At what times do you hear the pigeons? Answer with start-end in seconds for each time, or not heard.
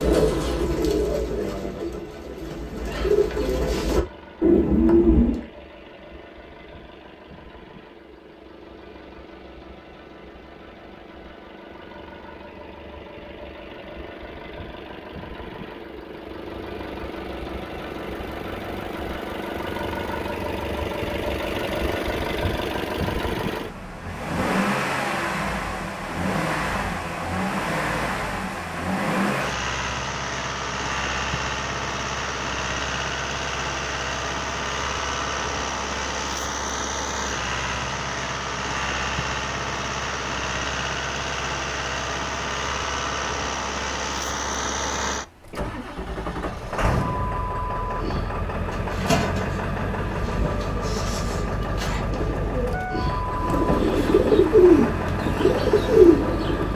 0.0-5.5, 47.7-56.7.